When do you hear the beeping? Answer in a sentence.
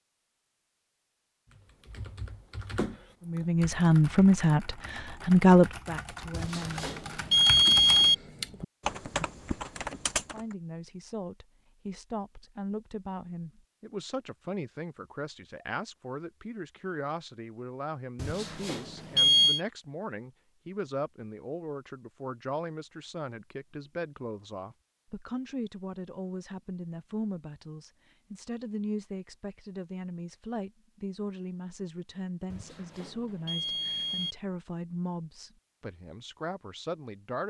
You can hear the beeping from 6.3 to 8.2 s, from 18.1 to 19.6 s and from 32.5 to 34.4 s.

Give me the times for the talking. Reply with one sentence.
You can hear the talking from 3.2 to 7.0 s and from 10.2 to 37.4 s.